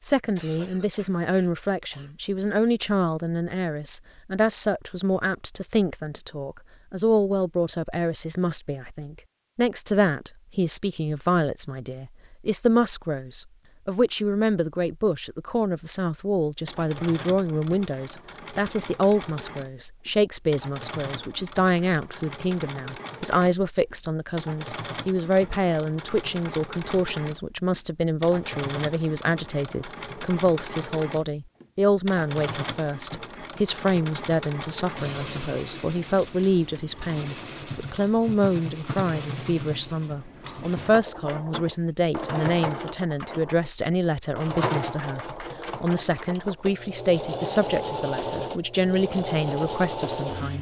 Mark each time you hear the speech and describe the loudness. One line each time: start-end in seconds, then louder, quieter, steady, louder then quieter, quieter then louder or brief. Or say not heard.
0.0-50.5 steady.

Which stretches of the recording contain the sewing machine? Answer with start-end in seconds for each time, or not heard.
16.6-50.5.